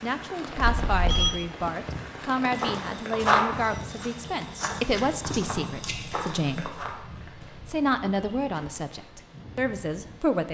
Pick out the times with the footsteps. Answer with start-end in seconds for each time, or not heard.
2.5-8.7.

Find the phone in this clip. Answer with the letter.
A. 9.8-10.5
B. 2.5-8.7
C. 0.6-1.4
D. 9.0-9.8
C.